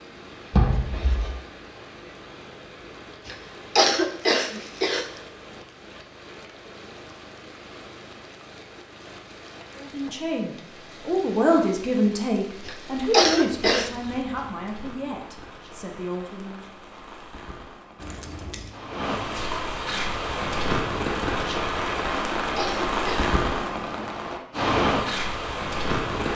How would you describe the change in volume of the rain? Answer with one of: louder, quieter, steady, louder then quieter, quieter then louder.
louder.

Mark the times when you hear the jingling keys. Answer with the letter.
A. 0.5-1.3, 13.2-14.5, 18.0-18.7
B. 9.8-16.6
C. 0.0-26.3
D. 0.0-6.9
A.